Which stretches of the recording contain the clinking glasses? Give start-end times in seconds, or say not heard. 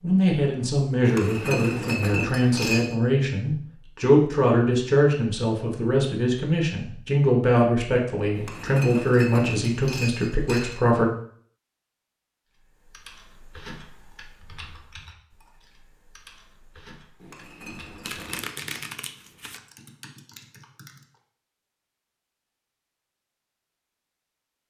1.0-3.0, 8.3-10.8, 17.1-18.9.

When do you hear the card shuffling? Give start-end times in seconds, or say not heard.
18.0-19.6.